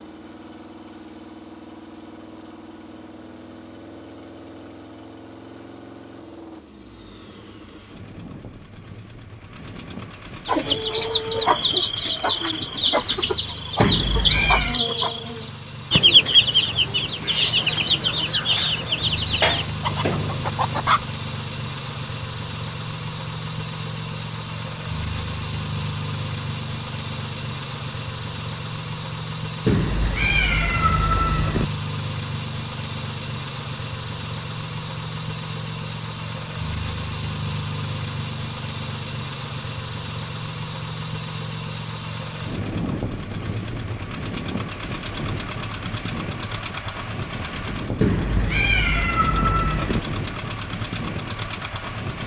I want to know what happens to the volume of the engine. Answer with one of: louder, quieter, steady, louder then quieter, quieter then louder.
louder.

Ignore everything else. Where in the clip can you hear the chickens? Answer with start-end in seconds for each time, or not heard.
10.4-21.1.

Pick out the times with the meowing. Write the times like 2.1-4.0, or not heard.
13.8-14.8, 29.6-31.6, 48.0-50.0.